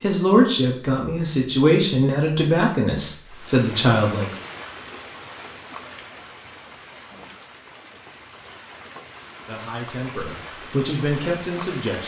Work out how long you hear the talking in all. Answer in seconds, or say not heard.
7 s.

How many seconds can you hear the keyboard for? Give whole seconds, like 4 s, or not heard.
not heard.